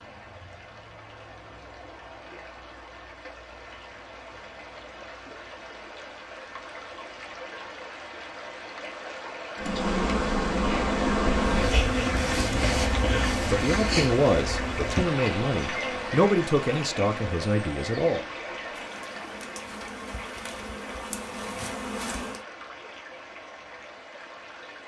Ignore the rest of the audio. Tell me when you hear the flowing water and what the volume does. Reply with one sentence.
The flowing water can be heard from 0.0 to 24.8 s, getting louder then quieter.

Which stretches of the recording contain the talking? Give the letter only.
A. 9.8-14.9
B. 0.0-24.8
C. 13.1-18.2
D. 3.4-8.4
C.